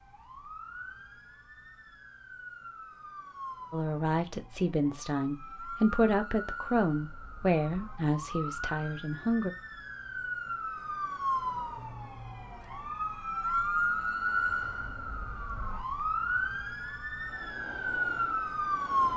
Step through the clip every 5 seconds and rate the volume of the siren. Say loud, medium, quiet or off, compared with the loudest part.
quiet, medium, loud, loud.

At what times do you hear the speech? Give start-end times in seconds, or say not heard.
3.7-9.5.